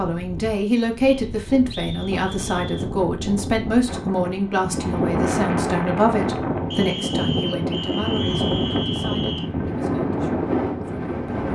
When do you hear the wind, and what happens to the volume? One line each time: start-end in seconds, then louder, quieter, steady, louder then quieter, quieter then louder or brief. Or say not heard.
0.0-11.5 louder.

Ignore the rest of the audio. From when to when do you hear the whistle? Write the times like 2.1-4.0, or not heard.
1.1-2.9, 6.7-9.5.